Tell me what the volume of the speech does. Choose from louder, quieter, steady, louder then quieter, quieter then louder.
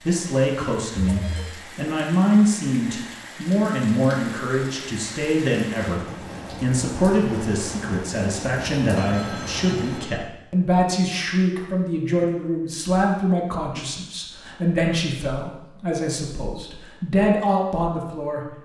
steady.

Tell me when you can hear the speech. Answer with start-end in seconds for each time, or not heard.
0.0-18.5.